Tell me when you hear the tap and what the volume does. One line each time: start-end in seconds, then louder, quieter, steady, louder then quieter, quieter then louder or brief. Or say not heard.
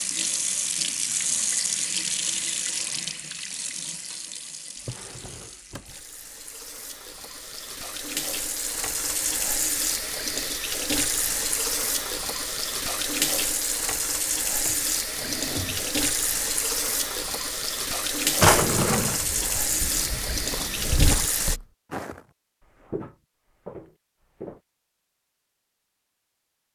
0.0-21.6 quieter then louder.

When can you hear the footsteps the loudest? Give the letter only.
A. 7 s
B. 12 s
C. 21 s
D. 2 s
C.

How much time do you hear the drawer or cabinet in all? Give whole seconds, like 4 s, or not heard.
3 s.